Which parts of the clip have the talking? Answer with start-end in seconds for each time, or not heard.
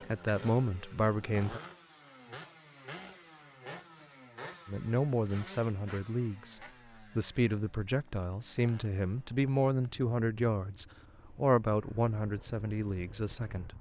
0.1-1.6, 4.7-13.7.